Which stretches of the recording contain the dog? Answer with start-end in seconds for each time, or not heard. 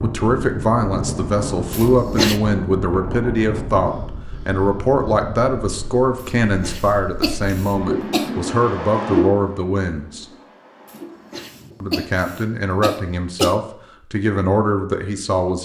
not heard.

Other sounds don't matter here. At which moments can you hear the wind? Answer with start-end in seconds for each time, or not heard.
0.0-12.0.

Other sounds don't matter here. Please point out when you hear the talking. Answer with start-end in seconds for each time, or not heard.
0.0-10.2, 11.8-15.5.